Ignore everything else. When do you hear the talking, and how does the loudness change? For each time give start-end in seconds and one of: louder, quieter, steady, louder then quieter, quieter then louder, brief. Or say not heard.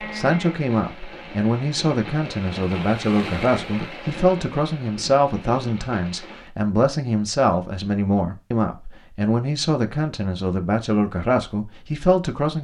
0.0-12.5 steady.